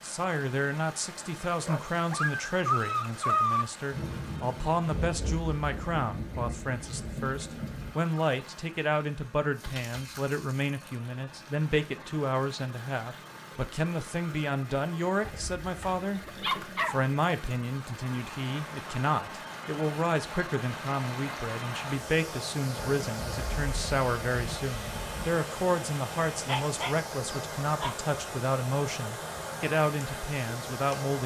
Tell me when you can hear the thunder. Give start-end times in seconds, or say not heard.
3.9-7.9, 22.8-25.4.